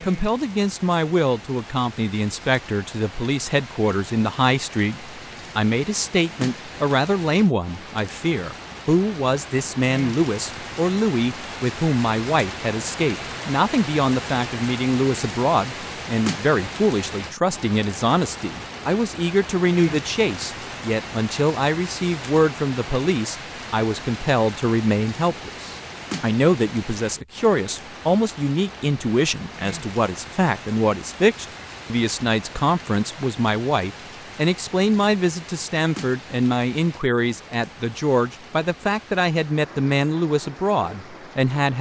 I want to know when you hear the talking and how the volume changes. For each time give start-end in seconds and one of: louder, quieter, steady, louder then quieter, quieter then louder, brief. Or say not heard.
0.0-41.7 steady.